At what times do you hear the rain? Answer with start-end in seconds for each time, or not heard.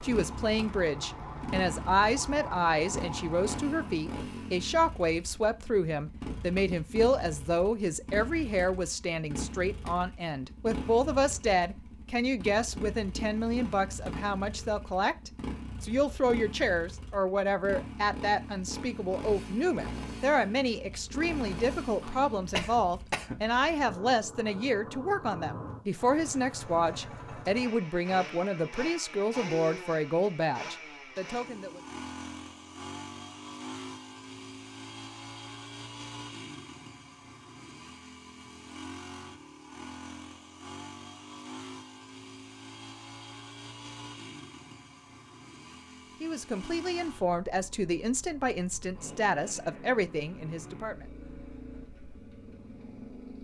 not heard.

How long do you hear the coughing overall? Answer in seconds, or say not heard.
2 s.